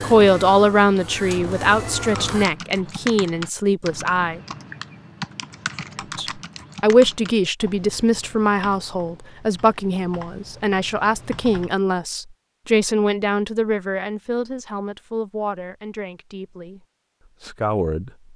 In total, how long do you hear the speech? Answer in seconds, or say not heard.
16 s.